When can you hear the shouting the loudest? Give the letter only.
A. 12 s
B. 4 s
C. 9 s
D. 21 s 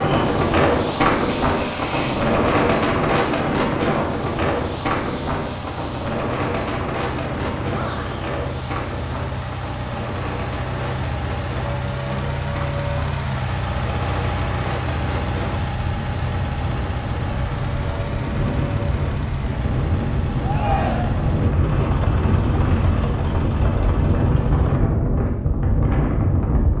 D.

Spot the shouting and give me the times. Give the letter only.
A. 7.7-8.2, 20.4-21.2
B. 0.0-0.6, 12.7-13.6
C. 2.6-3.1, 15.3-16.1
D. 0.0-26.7
A.